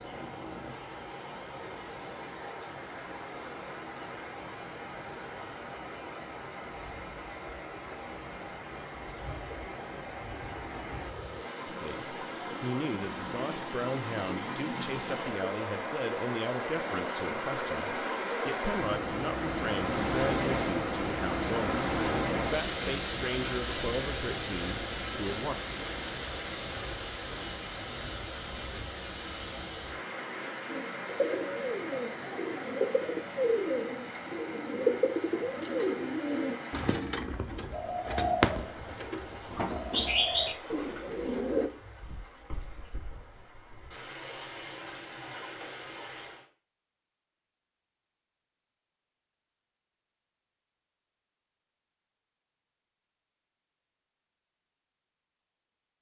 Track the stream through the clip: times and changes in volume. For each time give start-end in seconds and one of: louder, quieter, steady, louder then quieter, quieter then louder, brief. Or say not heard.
0.0-46.5 louder then quieter.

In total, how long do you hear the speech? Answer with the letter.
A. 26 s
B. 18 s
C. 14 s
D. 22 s
C.